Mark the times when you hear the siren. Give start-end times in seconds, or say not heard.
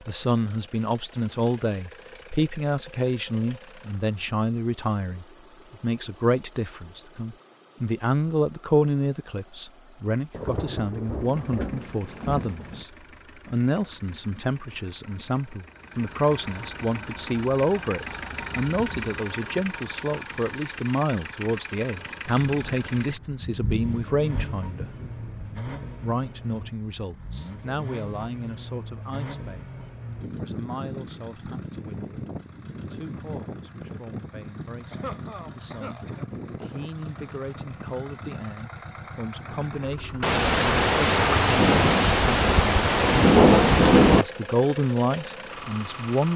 not heard.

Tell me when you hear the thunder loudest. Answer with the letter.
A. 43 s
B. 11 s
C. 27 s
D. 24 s
A.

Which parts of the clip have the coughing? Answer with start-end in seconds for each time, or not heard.
34.9-36.2.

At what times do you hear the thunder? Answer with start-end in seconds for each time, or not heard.
10.3-12.8, 22.4-25.8, 40.2-44.2.